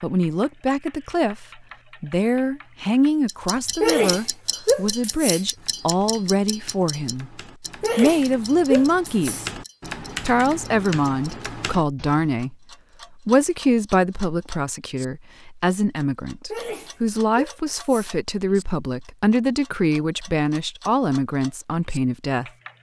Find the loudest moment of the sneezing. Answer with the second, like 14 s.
4 s.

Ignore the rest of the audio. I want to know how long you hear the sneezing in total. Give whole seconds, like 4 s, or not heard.
5 s.